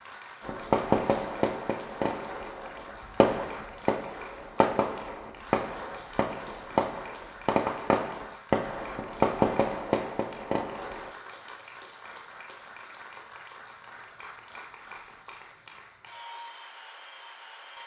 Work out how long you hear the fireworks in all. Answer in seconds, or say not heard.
11 s.